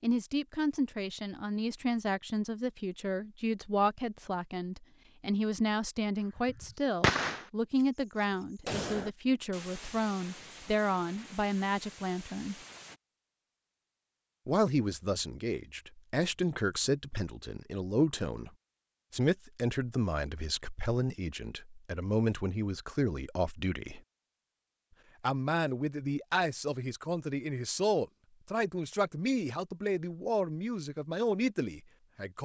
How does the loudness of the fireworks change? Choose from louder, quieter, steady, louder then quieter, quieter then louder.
quieter.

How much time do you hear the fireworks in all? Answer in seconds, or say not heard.
7 s.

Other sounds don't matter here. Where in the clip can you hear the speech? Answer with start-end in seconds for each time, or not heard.
0.0-12.6, 14.4-18.5, 19.1-24.0, 25.2-32.3.